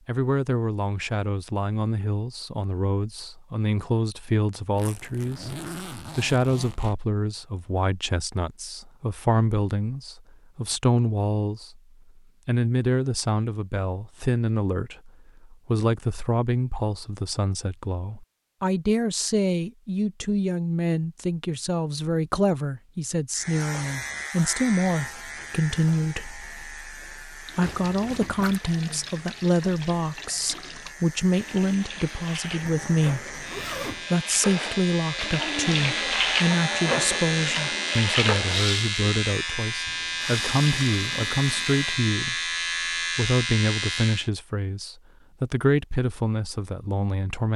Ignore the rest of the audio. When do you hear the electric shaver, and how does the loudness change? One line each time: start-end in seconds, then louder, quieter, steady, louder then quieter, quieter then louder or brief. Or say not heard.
23.3-44.3 quieter then louder.